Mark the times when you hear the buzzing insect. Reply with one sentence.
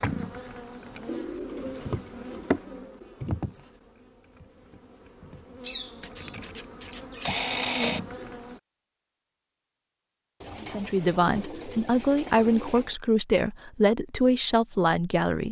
You can hear the buzzing insect from 0.0 to 8.6 s.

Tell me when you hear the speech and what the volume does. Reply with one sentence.
The speech can be heard from 10.6 to 15.4 s, at a steady volume.